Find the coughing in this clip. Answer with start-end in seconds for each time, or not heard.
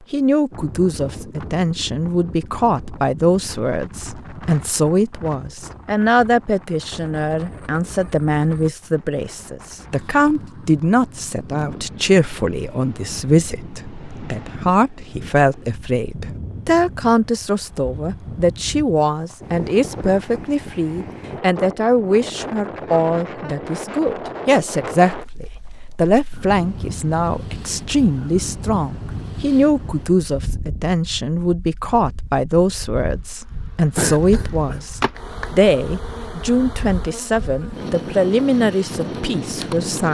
33.9-34.9.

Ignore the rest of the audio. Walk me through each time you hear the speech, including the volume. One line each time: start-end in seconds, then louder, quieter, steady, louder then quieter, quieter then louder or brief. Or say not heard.
0.1-40.0 steady.